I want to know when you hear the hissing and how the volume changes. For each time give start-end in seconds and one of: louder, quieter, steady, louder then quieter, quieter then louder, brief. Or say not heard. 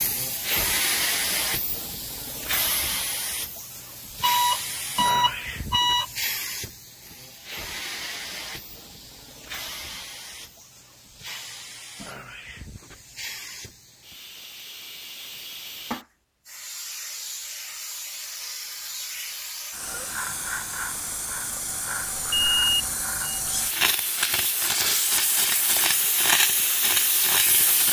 0.0-27.8 quieter then louder.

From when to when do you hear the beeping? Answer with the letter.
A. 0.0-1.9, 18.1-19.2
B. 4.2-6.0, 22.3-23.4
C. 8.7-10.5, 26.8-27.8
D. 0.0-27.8
B.